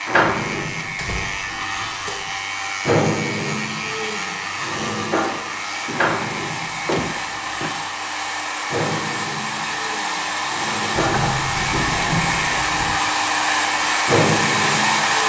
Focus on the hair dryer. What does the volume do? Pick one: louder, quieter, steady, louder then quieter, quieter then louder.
louder.